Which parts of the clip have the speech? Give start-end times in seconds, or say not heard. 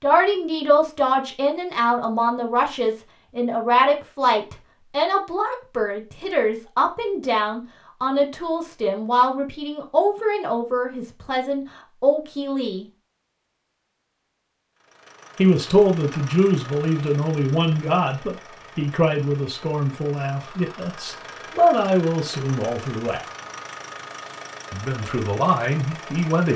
0.0-12.8, 15.3-23.2, 24.7-26.5.